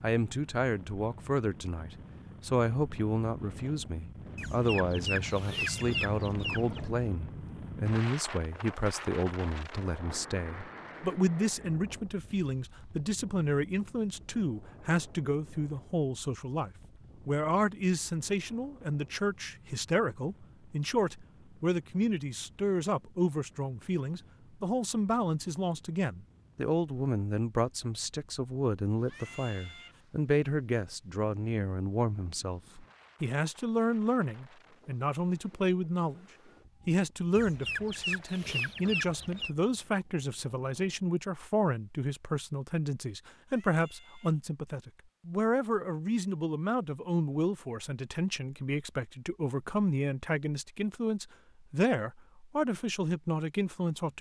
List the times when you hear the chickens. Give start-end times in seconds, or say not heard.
4.3-6.9, 37.4-39.5.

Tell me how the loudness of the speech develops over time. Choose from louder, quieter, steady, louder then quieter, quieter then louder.
steady.